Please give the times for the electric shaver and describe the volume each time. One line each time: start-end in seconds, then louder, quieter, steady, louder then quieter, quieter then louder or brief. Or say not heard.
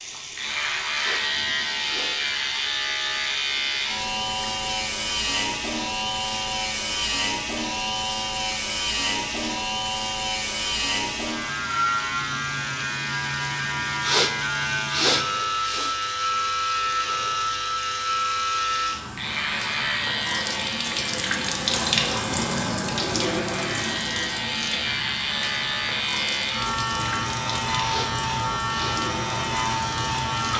0.3-30.5 steady.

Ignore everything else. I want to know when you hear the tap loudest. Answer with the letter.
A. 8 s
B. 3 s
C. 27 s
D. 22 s
D.